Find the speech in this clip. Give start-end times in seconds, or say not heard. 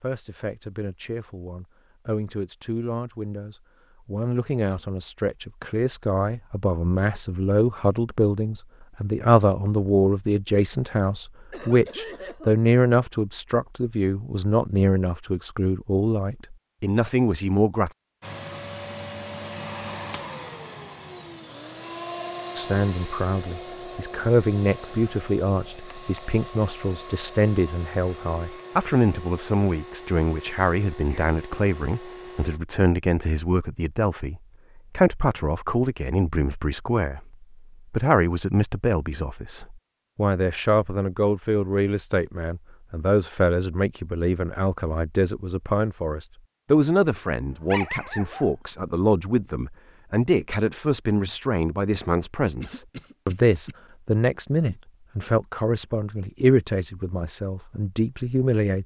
0.0-17.9, 22.6-58.8.